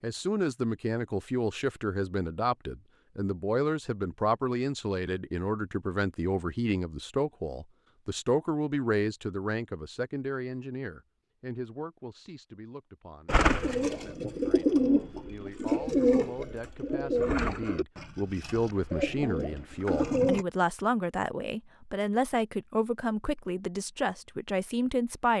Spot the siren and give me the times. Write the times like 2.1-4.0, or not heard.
not heard.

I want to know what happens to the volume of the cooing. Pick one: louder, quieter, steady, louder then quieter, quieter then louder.
quieter then louder.